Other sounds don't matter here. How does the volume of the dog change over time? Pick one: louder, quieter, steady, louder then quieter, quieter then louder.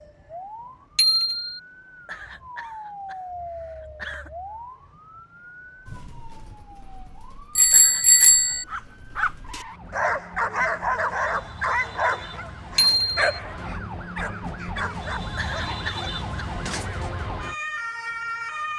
quieter.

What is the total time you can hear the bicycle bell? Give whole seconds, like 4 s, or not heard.
2 s.